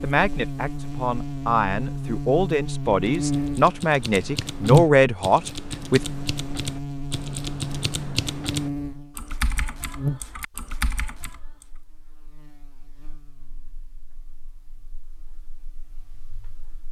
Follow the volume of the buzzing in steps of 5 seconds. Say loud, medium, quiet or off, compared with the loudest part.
loud, medium, medium, quiet.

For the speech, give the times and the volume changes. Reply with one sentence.
The speech can be heard from 0.0 to 6.0 s, getting louder.